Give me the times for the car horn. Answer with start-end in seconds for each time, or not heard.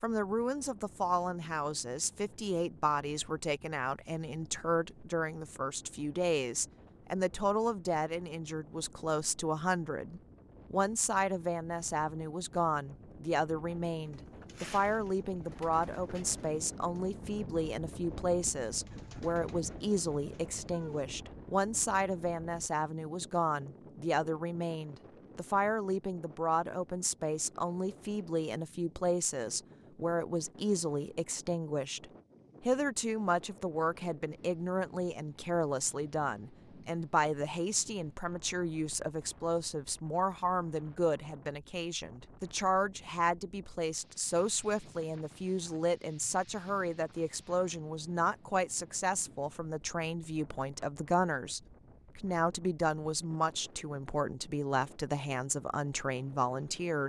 not heard.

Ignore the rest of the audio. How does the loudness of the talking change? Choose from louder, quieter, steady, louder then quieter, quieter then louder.
steady.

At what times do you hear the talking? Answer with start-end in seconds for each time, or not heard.
0.0-57.0.